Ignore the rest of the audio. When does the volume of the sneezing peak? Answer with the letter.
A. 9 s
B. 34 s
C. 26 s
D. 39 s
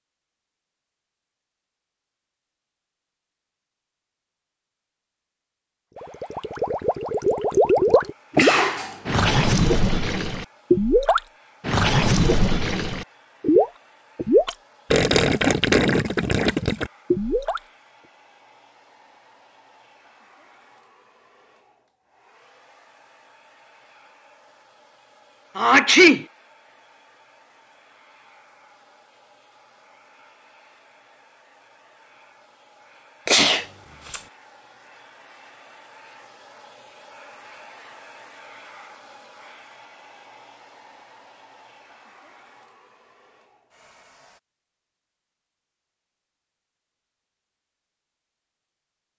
C.